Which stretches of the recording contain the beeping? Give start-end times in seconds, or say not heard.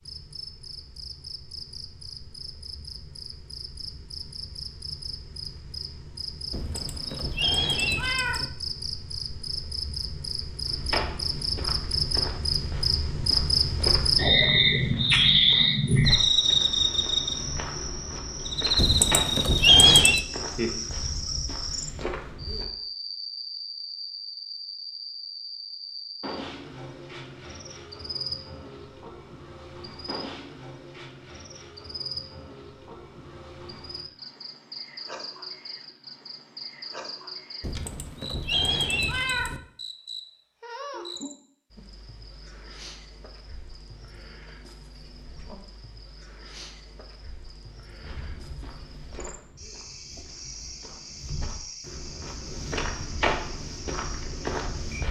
not heard.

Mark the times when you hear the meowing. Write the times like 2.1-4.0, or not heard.
6.5-8.5, 18.8-20.2, 37.6-39.6.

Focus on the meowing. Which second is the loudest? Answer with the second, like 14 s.
20 s.